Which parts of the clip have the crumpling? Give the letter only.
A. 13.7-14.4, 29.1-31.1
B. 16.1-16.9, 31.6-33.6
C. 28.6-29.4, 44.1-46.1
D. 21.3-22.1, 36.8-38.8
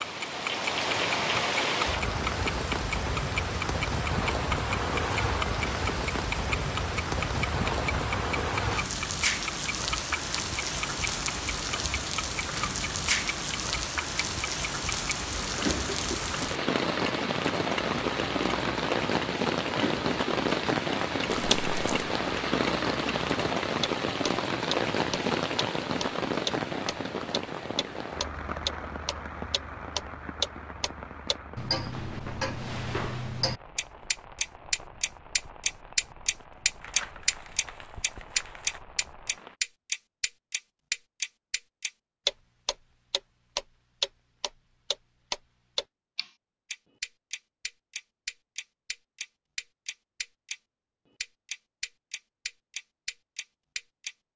D.